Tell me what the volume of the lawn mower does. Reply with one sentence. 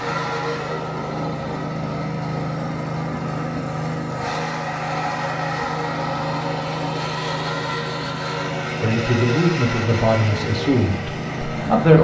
The volume of the lawn mower stays about the same.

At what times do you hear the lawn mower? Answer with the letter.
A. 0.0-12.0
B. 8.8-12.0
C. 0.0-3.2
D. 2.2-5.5
A.